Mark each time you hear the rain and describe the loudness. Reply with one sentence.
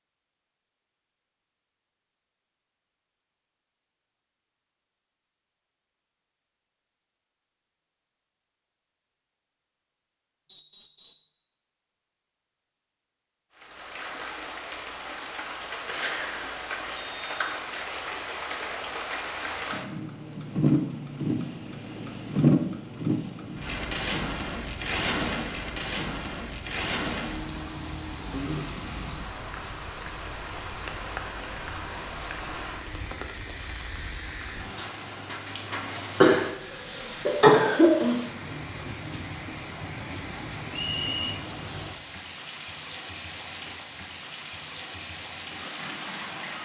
The rain can be heard from 13.6 to 46.6 s, getting louder then quieter.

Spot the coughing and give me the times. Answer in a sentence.
You can hear the coughing from 36.2 to 38.1 s.